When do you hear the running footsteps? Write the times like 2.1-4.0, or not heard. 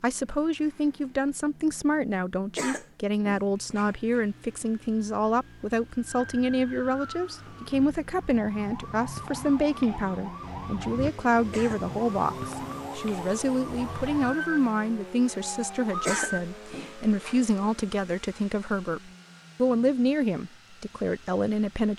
not heard.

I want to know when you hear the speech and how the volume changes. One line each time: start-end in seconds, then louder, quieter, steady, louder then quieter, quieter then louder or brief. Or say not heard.
0.0-21.9 steady.